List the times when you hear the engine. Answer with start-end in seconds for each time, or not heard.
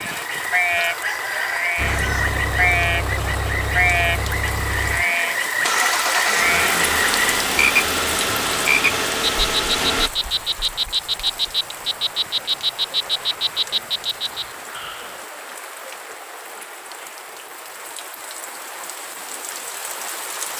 1.8-10.1.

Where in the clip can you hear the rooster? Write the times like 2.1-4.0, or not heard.
0.8-2.4.